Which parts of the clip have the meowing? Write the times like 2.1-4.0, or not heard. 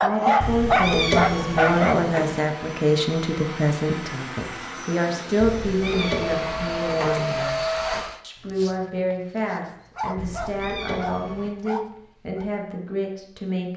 0.4-2.4, 5.4-7.4, 10.2-11.6.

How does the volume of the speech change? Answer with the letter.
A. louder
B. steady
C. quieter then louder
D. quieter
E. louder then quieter
D.